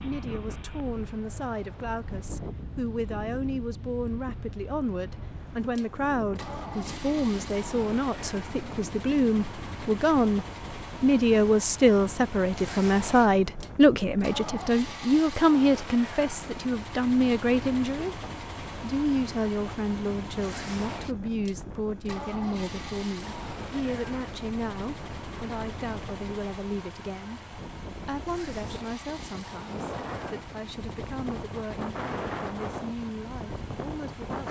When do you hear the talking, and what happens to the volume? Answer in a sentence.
You can hear the talking from 0.0 to 34.4 s, getting louder then quieter.